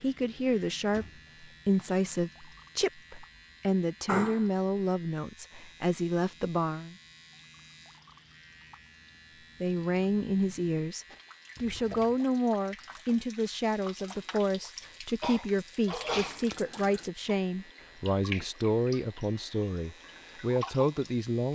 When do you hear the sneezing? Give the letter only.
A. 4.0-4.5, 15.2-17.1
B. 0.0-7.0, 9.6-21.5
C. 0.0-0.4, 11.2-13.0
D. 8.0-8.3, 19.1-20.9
A.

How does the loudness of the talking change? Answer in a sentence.
The volume of the talking stays about the same.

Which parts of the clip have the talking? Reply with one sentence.
The talking can be heard from 0.0 to 7.0 s and from 9.6 to 21.5 s.